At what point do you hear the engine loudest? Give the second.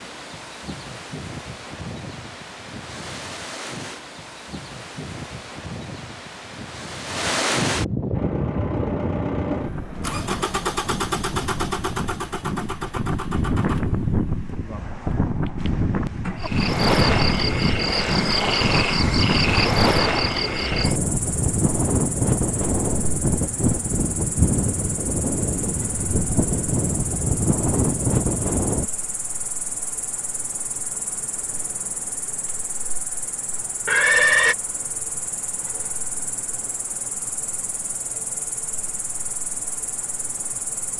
11 s.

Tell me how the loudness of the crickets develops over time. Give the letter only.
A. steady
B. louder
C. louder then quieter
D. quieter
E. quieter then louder
D.